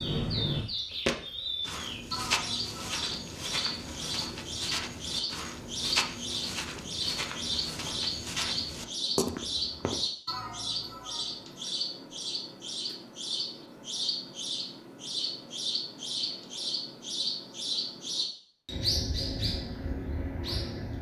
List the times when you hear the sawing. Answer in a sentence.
You can't hear the sawing here.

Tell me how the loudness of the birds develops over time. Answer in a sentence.
The loudness of the birds stays about the same.